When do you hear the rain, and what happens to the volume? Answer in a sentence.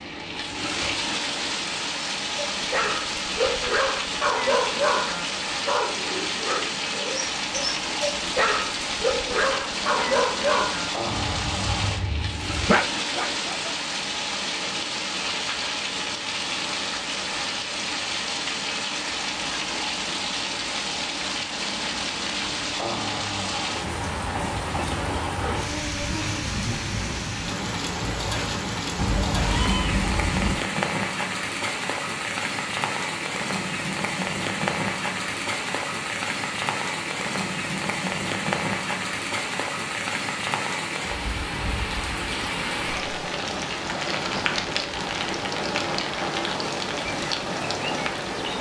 You can hear the rain from 0.0 to 48.5 s, at a steady volume.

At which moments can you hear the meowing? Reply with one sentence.
You can hear the meowing from 28.9 to 30.6 s.